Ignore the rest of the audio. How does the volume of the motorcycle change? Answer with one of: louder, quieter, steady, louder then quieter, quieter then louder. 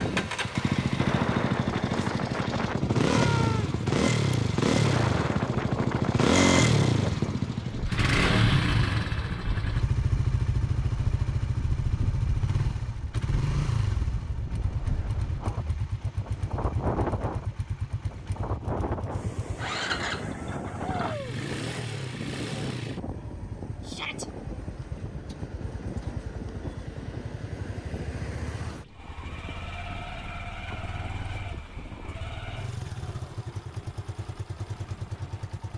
quieter.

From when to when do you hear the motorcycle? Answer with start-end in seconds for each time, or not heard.
0.0-35.7.